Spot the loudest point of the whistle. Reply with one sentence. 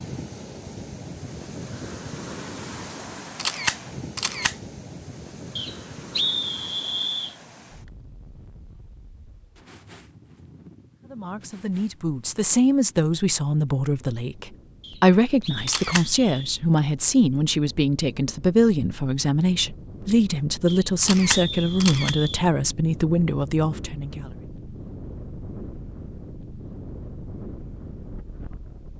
The loudest moment of the whistle is at 6 seconds.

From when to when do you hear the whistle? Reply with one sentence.
The whistle can be heard from 5.5 to 7.3 s, from 14.8 to 16.6 s and from 20.6 to 22.4 s.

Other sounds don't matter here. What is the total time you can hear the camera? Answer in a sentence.
You can hear the camera for 3 seconds altogether.